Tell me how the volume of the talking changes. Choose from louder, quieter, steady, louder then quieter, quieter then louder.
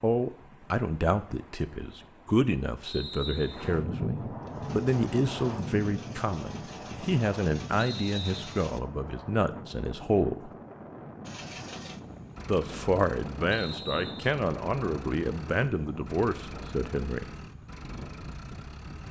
steady.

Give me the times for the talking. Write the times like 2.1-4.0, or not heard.
0.0-10.5, 12.4-17.4.